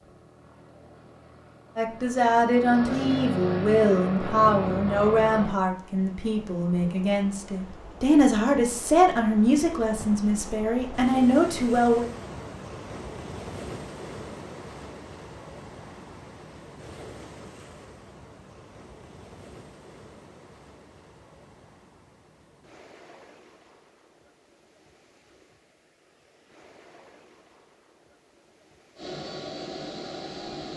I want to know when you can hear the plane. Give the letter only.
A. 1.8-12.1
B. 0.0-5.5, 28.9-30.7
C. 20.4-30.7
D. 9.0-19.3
B.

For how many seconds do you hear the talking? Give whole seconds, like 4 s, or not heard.
10 s.